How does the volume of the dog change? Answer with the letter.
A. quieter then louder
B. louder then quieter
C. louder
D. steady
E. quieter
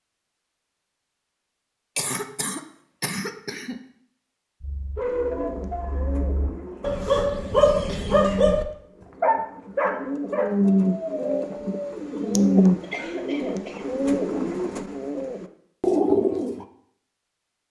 B.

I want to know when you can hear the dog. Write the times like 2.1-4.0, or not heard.
4.6-11.9.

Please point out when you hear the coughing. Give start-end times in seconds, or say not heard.
1.9-3.8, 6.7-8.1, 12.8-13.8.